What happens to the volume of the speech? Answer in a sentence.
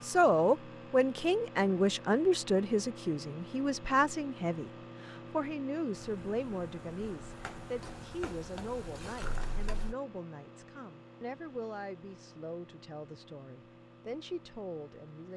The loudness of the speech goes down.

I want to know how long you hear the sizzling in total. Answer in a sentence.
The sizzling can be heard for 4 seconds in total.